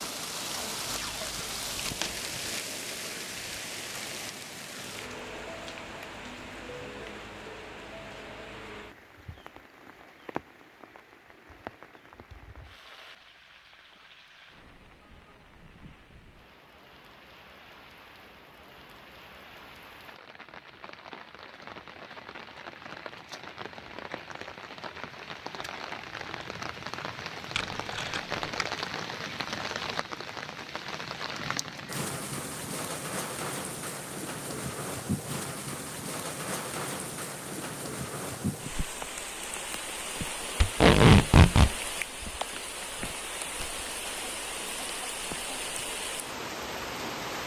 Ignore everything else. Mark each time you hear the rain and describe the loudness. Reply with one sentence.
The rain can be heard from 0.0 to 47.4 s, getting quieter then louder.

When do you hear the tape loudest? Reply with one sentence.
The volume of the tape peaks at 41 seconds.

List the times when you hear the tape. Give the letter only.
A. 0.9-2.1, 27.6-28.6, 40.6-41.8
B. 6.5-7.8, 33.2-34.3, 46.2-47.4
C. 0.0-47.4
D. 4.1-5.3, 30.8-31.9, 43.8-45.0
A.